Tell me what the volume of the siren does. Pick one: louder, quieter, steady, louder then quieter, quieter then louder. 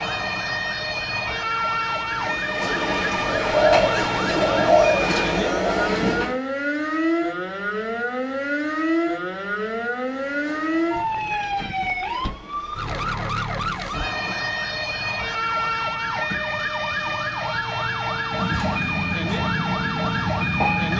steady.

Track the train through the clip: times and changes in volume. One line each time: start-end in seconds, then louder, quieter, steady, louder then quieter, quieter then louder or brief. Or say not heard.
0.1-6.4 louder
10.0-20.9 louder.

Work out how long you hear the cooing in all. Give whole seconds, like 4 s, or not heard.
3 s.